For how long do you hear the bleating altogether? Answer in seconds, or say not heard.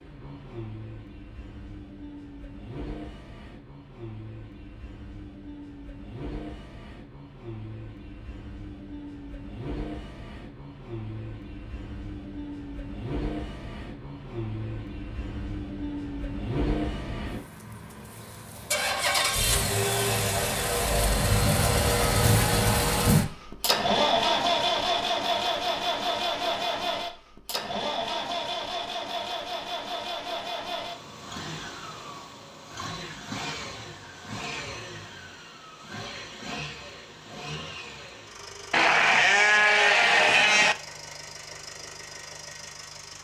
2 s.